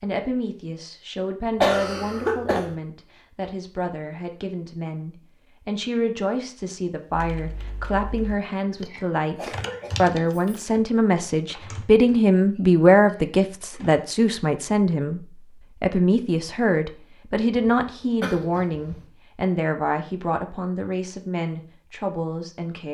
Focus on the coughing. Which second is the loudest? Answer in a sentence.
The loudest moment of the coughing is at 2 seconds.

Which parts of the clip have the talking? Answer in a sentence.
You can hear the talking from 0.0 to 22.8 s.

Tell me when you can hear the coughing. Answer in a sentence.
You can hear the coughing from 1.6 to 2.8 s, from 9.3 to 10.6 s and from 17.6 to 18.9 s.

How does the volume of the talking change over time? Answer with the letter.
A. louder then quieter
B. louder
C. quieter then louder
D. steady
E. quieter
A.